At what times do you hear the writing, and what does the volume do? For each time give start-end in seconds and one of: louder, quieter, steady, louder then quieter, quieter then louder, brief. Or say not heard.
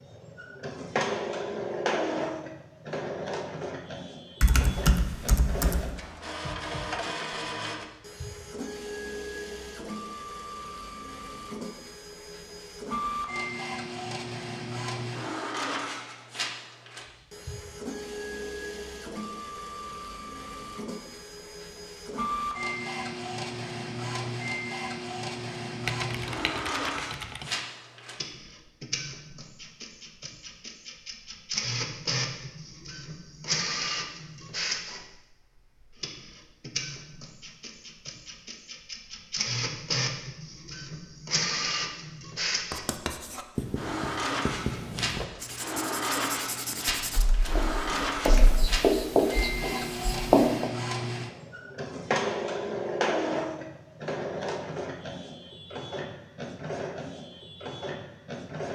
42.7-50.7 louder.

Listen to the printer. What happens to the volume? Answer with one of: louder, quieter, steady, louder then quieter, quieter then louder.
steady.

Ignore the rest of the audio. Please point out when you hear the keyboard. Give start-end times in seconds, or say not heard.
4.4-5.8, 25.9-27.4, 47.1-48.6.